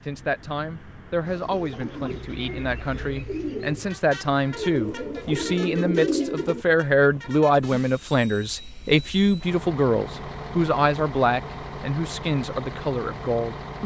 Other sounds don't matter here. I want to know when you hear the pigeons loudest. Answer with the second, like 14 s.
6 s.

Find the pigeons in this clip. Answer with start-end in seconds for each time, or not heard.
1.2-6.7.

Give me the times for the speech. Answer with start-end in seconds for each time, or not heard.
0.0-13.8.